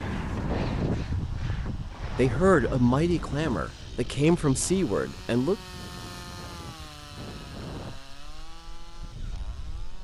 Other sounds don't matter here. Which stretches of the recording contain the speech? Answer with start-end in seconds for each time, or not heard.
2.1-5.5.